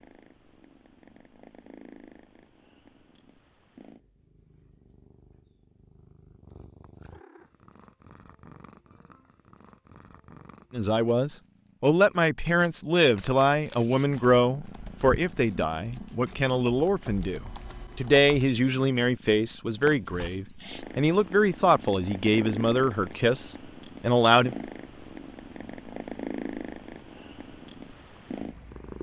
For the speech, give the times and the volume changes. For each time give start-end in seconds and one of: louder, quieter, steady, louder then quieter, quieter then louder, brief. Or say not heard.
10.7-24.6 steady.